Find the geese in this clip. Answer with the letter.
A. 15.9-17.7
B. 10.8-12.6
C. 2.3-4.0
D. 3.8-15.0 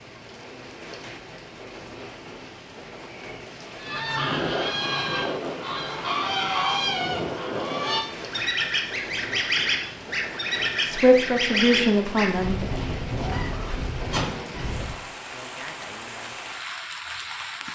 D.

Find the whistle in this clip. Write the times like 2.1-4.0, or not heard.
not heard.